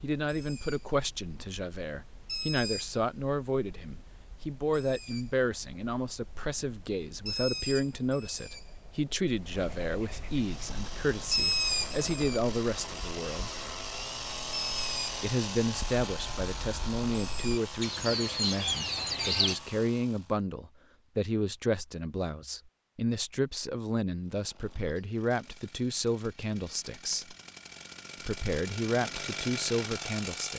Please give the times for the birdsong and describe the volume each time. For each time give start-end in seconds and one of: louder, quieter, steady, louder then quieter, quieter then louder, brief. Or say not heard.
0.0-19.6 louder.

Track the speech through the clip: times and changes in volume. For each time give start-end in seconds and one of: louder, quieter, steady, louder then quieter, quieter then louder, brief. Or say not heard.
0.0-13.6 steady
15.2-27.4 steady
28.2-30.5 brief.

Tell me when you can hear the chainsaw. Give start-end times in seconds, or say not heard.
10.3-20.4, 24.1-30.5.